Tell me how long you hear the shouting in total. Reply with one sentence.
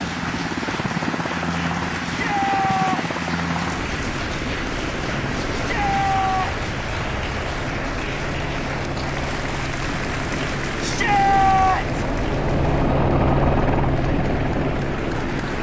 You can hear the shouting for 3 seconds altogether.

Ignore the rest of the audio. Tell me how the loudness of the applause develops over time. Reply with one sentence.
The loudness of the applause goes down.